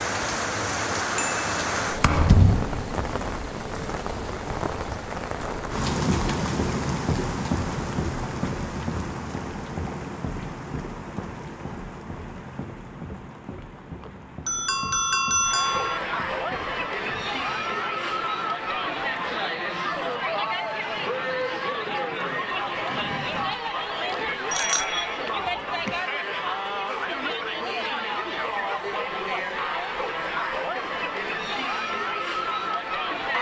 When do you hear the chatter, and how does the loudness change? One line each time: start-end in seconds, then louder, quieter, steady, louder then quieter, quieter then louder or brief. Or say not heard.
15.4-33.3 steady.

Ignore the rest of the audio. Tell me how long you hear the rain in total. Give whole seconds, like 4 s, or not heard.
24 s.